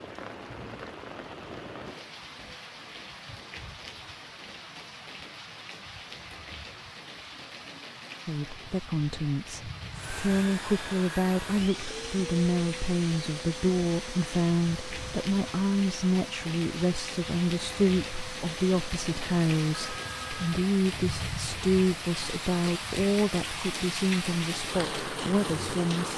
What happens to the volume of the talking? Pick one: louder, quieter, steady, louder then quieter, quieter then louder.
steady.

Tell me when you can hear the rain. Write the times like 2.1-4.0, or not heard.
0.0-26.1.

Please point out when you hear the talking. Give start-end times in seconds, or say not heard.
8.2-26.1.